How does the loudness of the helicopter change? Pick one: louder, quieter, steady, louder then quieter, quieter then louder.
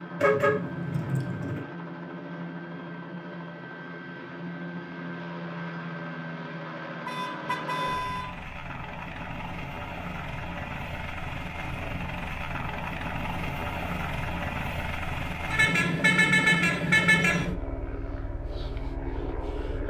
louder.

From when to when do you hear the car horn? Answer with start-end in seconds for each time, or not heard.
0.1-1.6, 7.0-8.4, 15.5-17.4.